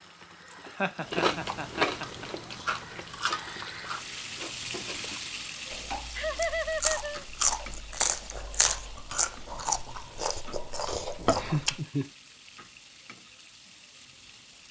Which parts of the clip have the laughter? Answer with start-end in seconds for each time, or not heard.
0.7-2.2, 6.2-7.2, 11.3-12.1.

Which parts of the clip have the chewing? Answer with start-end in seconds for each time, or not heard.
1.1-11.8.